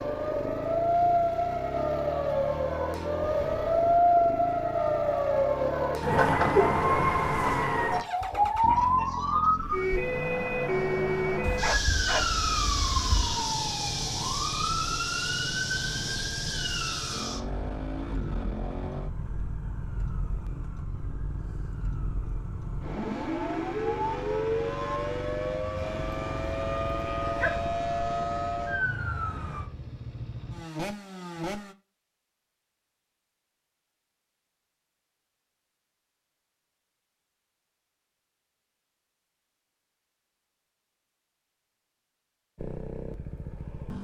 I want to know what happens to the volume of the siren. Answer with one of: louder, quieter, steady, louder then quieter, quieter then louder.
quieter then louder.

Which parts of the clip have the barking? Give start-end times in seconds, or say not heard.
11.4-13.3, 25.8-27.7.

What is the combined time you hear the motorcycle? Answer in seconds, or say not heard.
33 s.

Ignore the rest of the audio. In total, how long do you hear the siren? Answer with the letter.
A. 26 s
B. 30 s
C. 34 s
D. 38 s
B.